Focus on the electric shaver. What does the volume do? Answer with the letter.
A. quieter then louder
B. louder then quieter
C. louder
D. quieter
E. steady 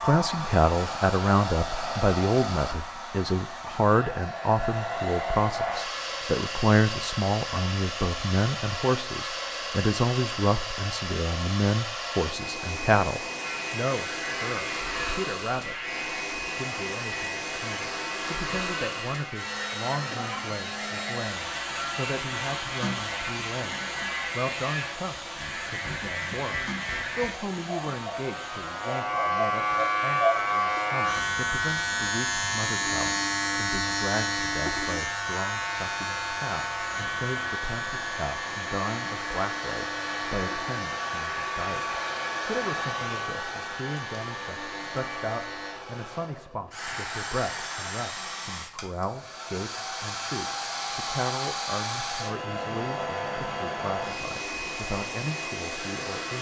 B.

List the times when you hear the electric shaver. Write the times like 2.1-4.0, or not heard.
13.3-45.8.